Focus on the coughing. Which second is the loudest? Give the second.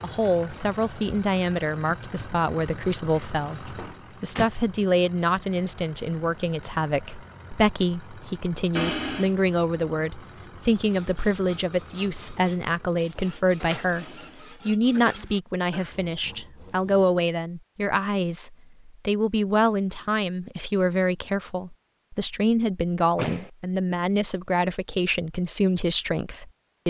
9 s.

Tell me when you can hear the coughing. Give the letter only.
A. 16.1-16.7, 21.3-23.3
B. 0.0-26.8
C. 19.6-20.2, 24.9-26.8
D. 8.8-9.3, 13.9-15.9
D.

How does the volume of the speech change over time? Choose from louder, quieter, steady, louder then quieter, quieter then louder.
steady.